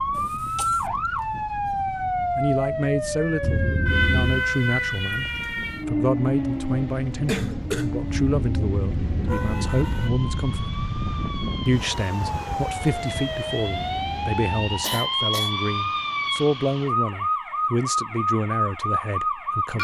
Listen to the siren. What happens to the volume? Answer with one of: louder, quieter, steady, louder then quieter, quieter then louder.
quieter then louder.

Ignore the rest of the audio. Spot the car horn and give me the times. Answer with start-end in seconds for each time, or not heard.
3.4-4.5, 8.1-10.1, 13.7-14.9.